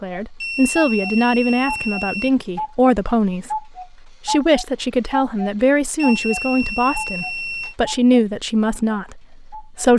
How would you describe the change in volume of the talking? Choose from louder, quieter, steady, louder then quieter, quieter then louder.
steady.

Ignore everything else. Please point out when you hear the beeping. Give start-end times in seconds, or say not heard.
0.4-2.3, 6.0-7.8.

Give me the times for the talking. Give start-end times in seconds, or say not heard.
0.0-3.6, 4.2-9.9.